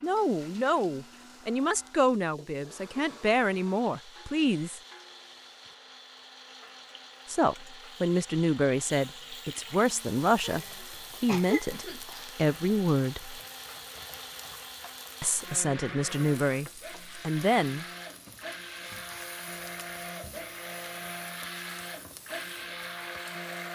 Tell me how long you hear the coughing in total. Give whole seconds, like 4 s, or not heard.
2 s.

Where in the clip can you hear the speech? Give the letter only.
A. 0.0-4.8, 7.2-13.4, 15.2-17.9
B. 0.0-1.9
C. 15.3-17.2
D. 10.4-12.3
A.